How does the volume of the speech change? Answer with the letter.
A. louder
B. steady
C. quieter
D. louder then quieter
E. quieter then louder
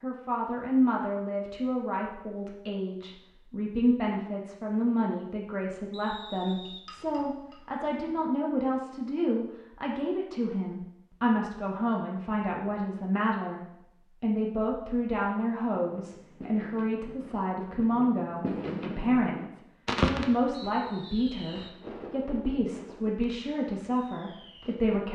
B.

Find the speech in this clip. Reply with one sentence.
The speech can be heard from 0.0 to 13.6 s and from 14.2 to 25.1 s.